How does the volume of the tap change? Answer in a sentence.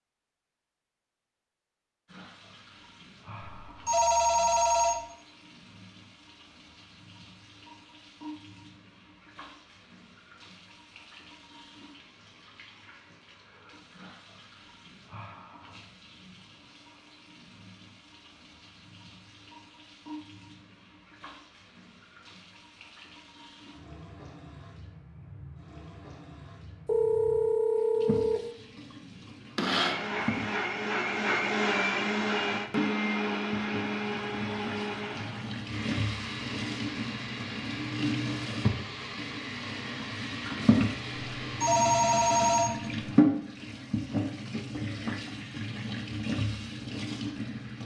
The loudness of the tap goes up.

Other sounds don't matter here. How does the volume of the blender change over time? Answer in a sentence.
The volume of the blender goes down.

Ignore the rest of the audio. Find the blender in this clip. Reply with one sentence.
The blender can be heard from 29.0 to 42.6 s.